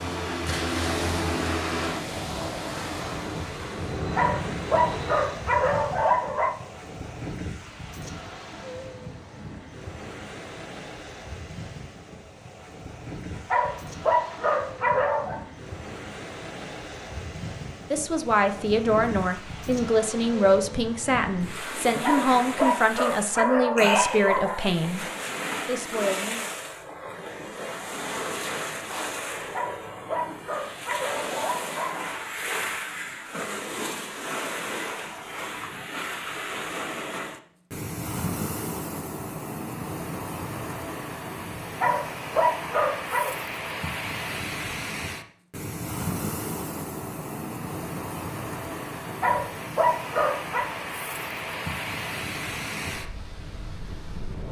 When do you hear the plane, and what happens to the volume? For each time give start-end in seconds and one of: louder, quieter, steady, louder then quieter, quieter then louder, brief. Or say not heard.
0.0-5.5 quieter then louder.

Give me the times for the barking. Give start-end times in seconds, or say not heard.
4.0-6.5, 13.3-15.4, 21.9-24.8, 29.4-32.2, 41.6-43.4, 49.0-50.6.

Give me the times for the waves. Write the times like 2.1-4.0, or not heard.
0.2-54.4.